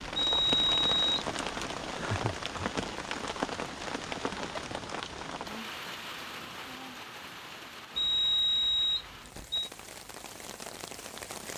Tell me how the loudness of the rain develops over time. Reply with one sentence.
The loudness of the rain goes down.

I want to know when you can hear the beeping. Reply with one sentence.
You can hear the beeping from 0.1 to 1.2 s and from 8.0 to 9.7 s.